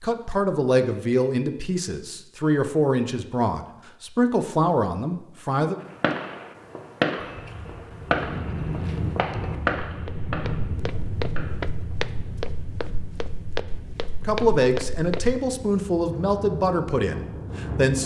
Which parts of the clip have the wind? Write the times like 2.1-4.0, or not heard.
7.8-18.0.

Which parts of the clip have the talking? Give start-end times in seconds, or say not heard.
0.0-5.8, 14.2-18.0.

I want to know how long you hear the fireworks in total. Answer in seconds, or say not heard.
6 s.